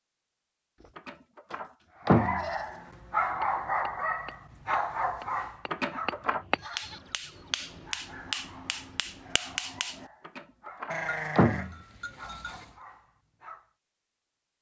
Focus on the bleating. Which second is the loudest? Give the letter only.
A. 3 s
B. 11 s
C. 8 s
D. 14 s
B.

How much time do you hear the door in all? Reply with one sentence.
You can hear the door for 4 seconds altogether.